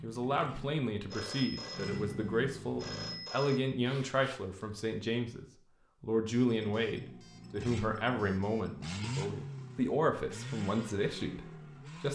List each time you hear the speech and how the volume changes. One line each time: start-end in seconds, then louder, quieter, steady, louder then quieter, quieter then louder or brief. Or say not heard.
0.0-12.1 steady.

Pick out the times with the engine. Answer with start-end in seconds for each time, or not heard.
0.0-3.3, 6.5-12.1.